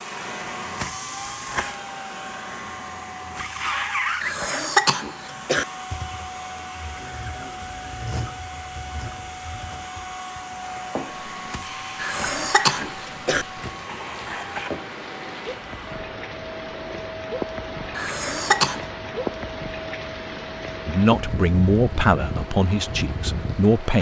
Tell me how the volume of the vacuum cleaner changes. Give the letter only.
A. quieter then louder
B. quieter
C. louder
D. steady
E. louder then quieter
B.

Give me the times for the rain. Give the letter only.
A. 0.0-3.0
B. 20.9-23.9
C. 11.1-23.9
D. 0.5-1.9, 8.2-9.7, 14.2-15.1
C.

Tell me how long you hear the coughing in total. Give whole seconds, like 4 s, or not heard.
4 s.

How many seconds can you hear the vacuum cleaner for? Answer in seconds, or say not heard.
24 s.